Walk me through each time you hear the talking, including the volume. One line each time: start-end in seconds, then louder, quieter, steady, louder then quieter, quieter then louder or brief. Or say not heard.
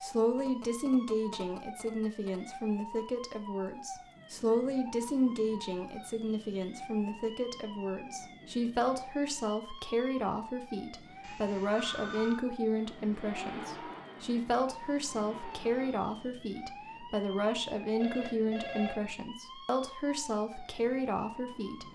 0.0-21.8 steady.